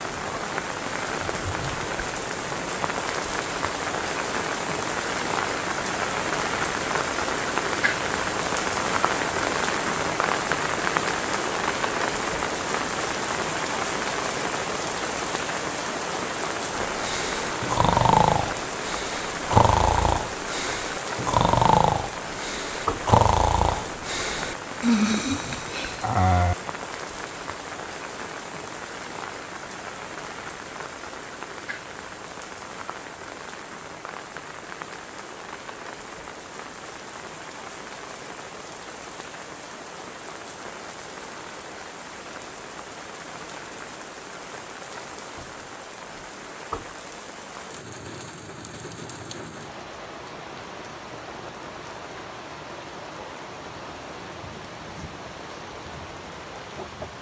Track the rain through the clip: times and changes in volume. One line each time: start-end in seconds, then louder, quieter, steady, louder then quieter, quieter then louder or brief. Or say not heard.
0.0-57.1 quieter.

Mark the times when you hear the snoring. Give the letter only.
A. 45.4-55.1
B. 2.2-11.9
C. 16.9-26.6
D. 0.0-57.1
C.